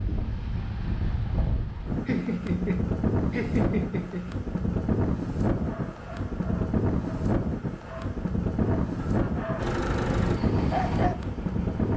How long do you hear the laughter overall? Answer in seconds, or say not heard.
3 s.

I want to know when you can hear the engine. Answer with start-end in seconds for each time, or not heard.
9.6-11.9.